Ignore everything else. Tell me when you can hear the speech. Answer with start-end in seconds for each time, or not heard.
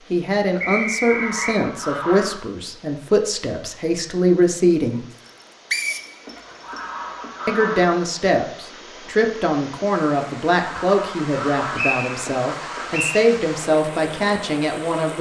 0.1-5.0, 7.5-15.1.